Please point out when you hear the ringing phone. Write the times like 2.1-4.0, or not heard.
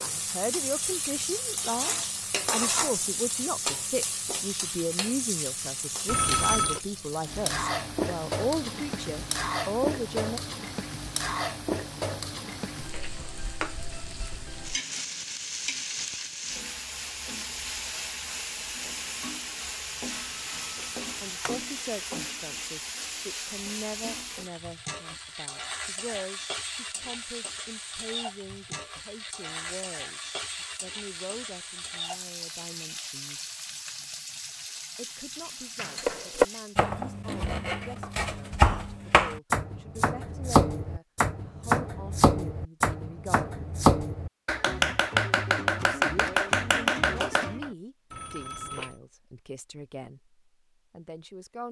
6.0-6.8, 20.1-21.6, 48.1-49.0.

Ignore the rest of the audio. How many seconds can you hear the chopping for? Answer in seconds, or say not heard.
12 s.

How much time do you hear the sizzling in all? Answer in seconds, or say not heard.
37 s.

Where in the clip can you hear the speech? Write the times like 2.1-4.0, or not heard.
0.0-10.4, 21.0-33.5, 35.0-43.7, 45.8-51.6.